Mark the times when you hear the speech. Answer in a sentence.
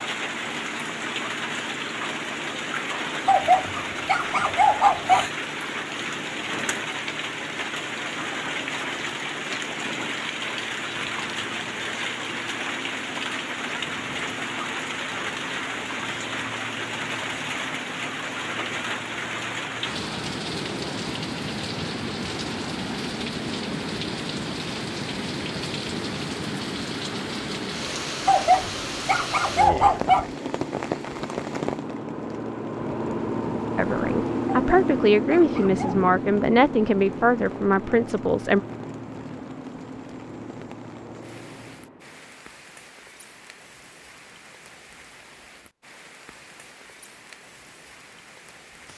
You can hear the speech from 33.8 to 38.6 s.